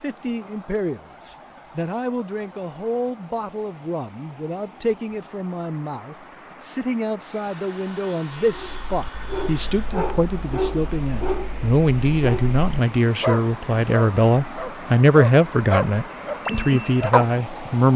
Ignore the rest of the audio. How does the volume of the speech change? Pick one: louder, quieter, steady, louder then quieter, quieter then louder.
louder.